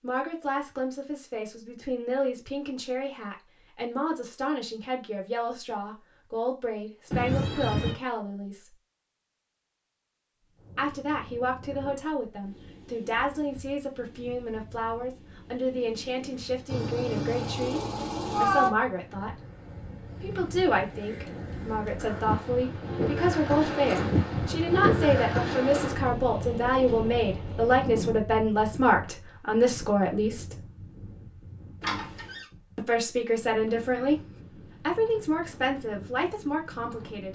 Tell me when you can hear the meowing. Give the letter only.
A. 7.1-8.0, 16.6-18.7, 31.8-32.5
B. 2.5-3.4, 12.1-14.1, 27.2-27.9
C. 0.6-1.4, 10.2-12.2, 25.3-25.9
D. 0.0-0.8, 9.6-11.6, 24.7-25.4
A.